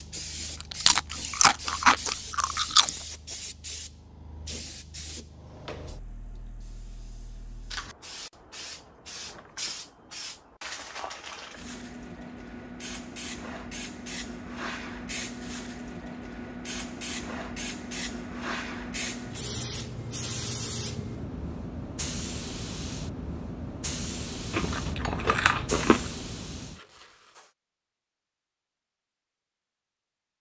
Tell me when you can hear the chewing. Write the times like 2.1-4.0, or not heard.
0.6-2.9, 24.5-26.1.